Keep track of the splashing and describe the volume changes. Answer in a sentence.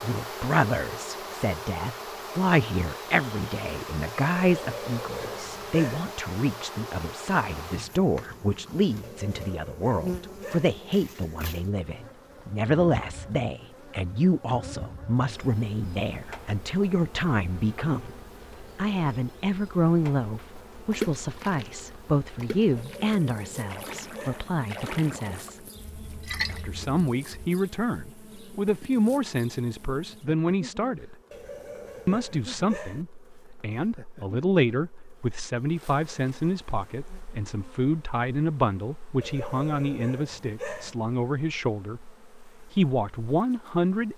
The volume of the splashing goes up.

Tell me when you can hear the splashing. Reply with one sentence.
You can hear the splashing from 20.9 to 27.5 s.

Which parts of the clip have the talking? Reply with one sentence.
The talking can be heard from 0.0 to 18.1 s, from 18.8 to 25.6 s, from 26.4 to 31.1 s and from 32.0 to 44.1 s.